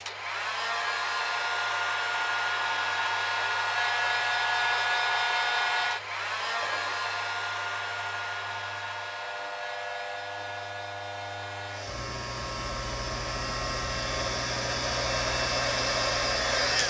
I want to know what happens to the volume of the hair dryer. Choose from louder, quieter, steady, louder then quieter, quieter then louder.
quieter then louder.